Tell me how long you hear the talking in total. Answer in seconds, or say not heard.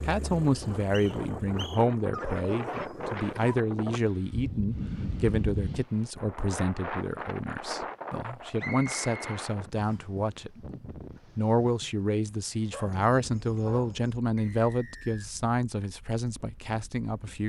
17 s.